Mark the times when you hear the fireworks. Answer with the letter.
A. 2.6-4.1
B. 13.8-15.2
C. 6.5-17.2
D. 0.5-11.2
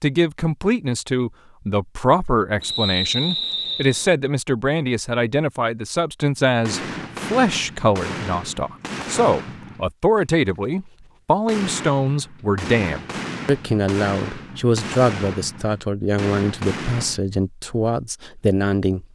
C.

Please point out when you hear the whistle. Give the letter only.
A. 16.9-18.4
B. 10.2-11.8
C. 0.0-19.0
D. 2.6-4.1
D.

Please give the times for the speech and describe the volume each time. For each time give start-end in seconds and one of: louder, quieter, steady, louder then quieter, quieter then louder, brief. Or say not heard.
0.0-19.0 steady.